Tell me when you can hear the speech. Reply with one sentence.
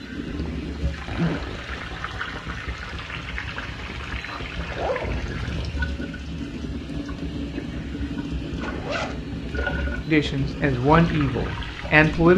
You can hear the speech from 10.1 to 12.3 s.